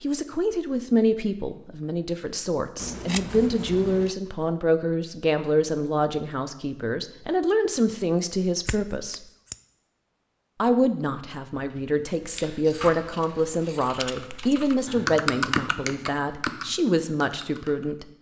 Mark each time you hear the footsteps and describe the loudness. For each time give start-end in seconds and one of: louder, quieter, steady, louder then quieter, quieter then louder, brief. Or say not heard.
not heard.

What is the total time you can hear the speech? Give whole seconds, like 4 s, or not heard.
17 s.